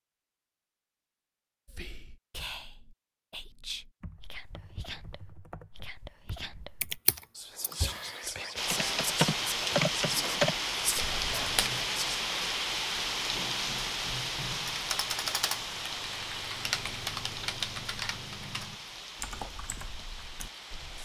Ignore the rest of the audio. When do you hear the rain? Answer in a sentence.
The rain can be heard from 8.6 to 20.9 s.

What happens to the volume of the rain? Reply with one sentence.
The loudness of the rain goes down.